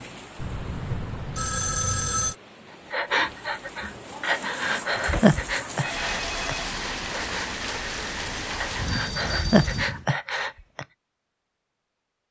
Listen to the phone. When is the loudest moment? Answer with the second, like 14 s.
2 s.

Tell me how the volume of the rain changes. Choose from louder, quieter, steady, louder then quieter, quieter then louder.
louder.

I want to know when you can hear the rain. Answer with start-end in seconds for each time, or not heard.
0.0-10.1.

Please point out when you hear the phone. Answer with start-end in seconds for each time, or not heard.
0.3-2.4, 4.9-6.7, 8.8-9.9.